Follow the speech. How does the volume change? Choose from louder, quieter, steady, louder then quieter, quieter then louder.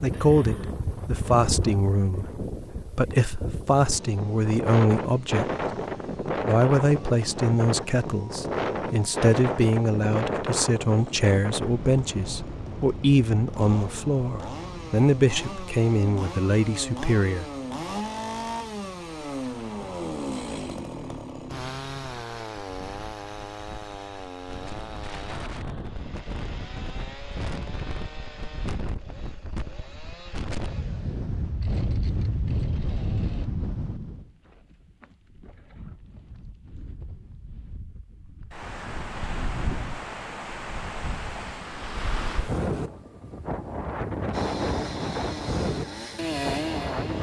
steady.